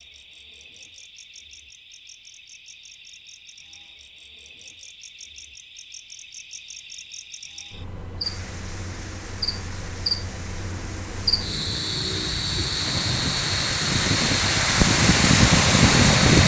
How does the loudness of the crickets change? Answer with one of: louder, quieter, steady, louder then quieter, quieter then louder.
louder.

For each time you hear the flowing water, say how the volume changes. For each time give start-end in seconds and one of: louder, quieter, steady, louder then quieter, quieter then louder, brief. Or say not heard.
8.2-16.4 louder.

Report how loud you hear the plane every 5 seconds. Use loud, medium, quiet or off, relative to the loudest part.
off, off, medium, loud.